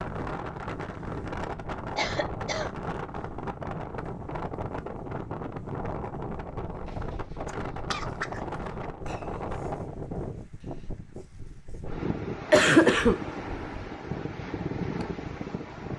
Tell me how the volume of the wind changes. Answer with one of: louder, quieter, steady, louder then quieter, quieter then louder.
steady.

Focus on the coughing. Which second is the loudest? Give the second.
13 s.